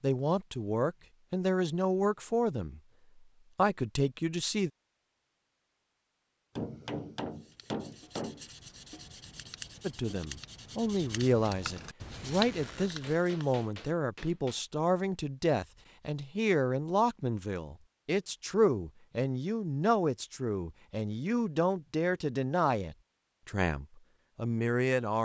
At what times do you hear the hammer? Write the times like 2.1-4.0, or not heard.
6.5-8.4, 12.8-14.6.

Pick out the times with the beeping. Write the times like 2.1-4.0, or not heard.
not heard.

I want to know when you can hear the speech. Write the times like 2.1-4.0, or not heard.
0.0-2.8, 3.5-4.7, 9.8-25.1.